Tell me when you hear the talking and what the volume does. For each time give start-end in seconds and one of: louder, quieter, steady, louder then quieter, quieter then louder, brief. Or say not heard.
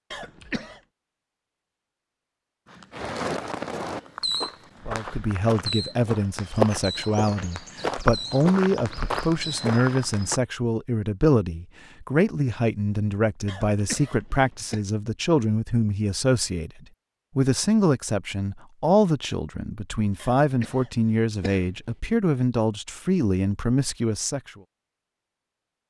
4.8-24.5 steady.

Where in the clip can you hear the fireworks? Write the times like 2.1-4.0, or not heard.
2.9-10.3.